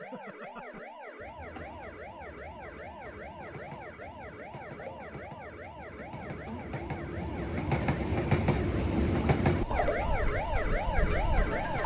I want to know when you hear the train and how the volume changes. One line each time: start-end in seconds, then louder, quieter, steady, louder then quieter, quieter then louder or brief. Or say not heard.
0.0-11.8 louder.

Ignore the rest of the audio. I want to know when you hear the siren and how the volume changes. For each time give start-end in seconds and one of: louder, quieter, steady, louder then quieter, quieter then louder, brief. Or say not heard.
0.0-11.8 louder.